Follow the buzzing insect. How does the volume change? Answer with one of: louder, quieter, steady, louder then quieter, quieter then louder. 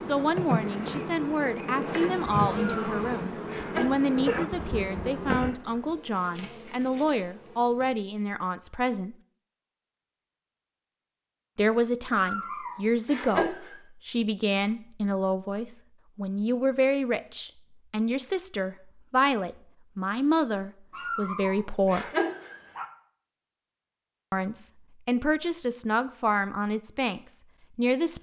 quieter.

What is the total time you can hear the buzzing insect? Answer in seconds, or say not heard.
8 s.